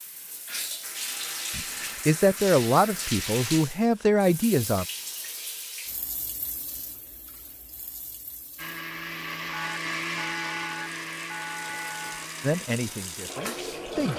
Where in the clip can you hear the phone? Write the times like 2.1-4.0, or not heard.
9.5-12.2.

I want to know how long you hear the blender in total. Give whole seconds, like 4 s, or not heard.
4 s.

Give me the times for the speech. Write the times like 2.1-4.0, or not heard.
1.5-4.8, 12.4-14.1.